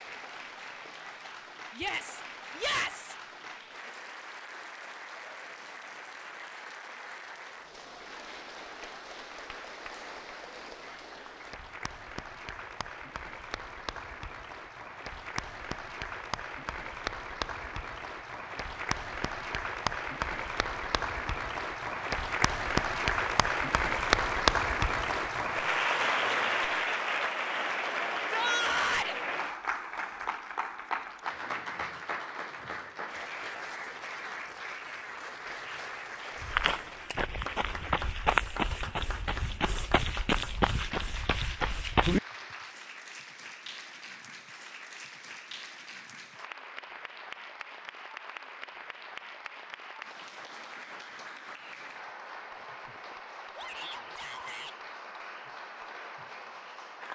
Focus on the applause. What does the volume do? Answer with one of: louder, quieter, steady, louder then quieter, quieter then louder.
louder then quieter.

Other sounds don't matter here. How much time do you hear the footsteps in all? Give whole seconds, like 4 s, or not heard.
6 s.